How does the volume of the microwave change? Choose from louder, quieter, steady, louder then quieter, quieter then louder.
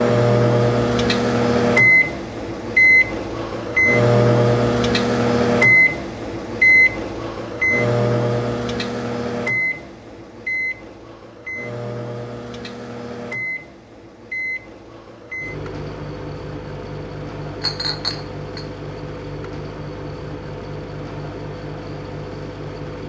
quieter.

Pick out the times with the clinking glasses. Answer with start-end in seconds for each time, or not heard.
17.6-18.6.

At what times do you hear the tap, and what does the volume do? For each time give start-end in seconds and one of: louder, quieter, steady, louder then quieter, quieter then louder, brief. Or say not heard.
not heard.